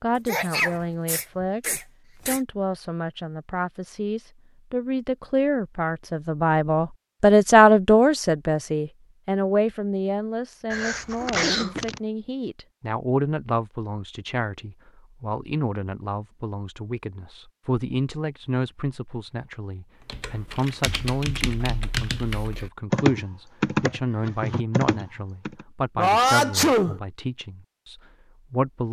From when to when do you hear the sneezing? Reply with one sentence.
The sneezing can be heard from 0.2 to 2.4 s, from 10.7 to 12.0 s and from 25.9 to 27.0 s.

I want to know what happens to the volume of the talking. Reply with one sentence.
The loudness of the talking goes up, then down.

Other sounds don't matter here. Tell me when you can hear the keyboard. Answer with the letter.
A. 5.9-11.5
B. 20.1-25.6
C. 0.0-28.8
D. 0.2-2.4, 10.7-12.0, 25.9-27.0
B.